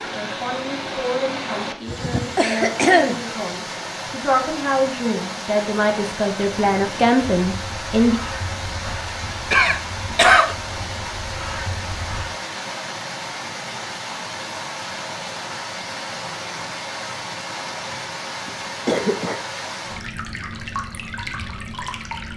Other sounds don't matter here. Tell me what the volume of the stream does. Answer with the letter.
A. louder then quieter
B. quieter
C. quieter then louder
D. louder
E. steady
E.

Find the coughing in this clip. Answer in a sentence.
You can hear the coughing from 1.9 to 3.2 s, from 9.5 to 10.6 s and from 18.4 to 19.4 s.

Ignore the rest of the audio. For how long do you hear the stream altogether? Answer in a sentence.
The stream can be heard for 22 seconds in total.